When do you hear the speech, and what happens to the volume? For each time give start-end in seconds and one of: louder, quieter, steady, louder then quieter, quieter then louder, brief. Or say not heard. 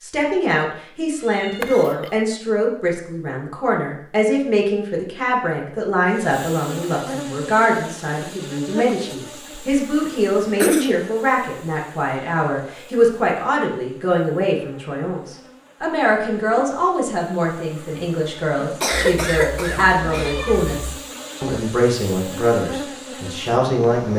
0.0-24.1 steady.